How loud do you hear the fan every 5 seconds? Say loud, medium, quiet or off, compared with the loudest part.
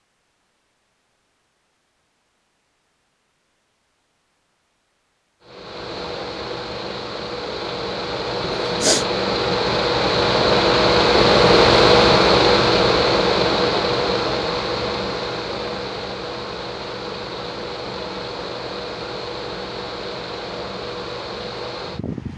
off, medium, loud, quiet, quiet.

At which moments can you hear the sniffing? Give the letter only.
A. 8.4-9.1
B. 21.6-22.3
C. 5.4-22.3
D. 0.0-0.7
A.